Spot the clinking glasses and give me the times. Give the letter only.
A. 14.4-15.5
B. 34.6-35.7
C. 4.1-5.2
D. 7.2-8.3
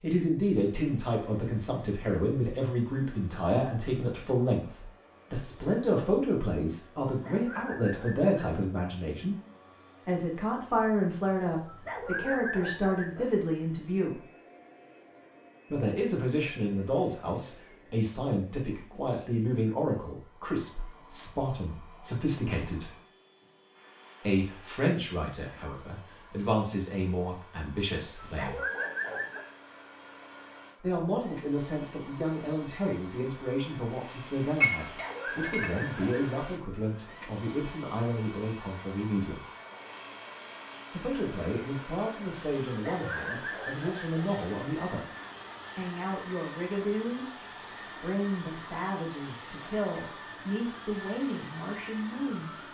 B.